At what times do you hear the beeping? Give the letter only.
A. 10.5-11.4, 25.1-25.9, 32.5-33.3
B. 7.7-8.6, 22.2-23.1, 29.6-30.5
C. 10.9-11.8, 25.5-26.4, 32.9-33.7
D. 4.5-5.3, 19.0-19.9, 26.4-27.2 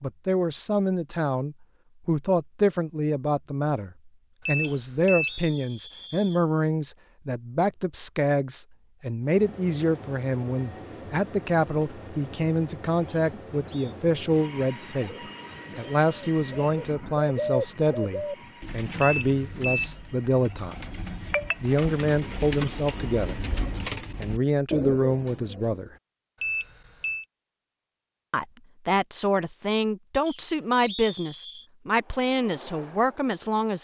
D.